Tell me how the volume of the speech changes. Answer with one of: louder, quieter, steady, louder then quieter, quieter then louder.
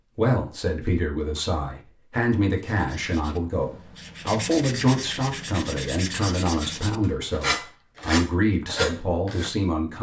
steady.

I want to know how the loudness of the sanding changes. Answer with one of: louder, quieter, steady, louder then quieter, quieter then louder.
louder.